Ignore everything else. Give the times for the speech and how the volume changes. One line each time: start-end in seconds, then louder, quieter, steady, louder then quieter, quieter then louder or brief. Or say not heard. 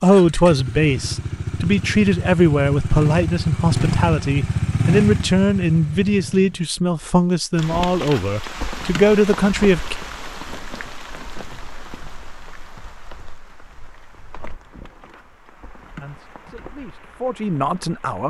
0.0-9.9 steady
16.0-18.2 brief.